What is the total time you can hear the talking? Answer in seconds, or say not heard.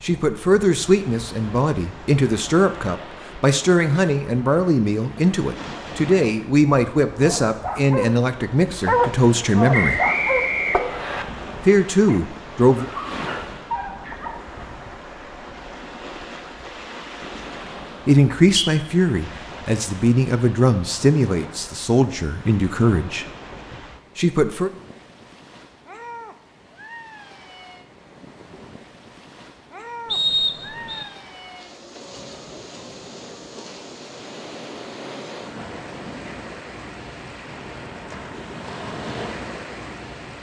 17 s.